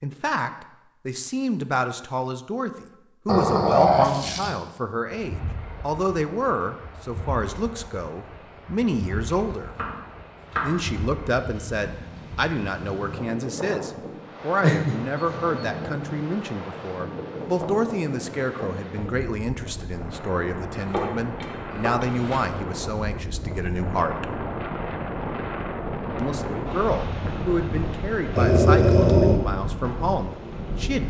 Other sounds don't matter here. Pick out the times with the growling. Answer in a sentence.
You can hear the growling from 3.2 to 4.5 s, from 14.6 to 16.2 s and from 28.4 to 29.4 s.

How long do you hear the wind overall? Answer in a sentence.
The wind can be heard for 26 seconds in total.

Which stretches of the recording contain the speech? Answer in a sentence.
The speech can be heard from 0.0 to 9.8 s, from 10.6 to 24.3 s and from 26.1 to 31.0 s.